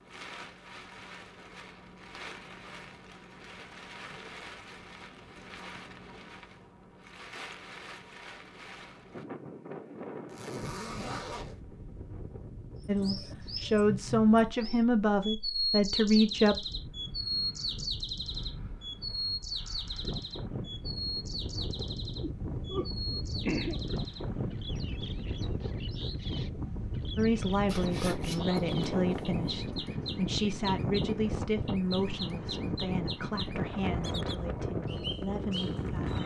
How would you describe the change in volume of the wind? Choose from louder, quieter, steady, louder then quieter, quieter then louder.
louder.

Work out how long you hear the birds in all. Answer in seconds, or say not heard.
23 s.